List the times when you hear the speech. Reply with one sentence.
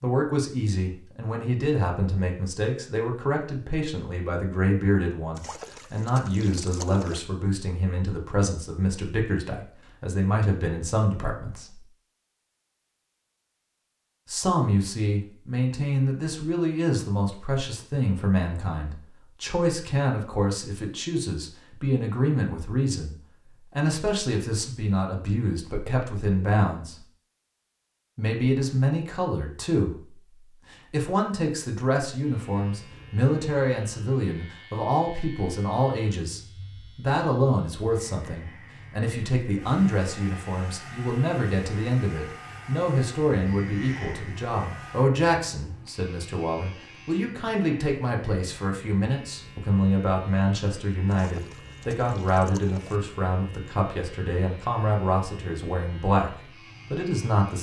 The speech can be heard from 0.0 to 11.8 s, from 14.2 to 27.0 s, from 28.1 to 30.1 s and from 30.7 to 57.5 s.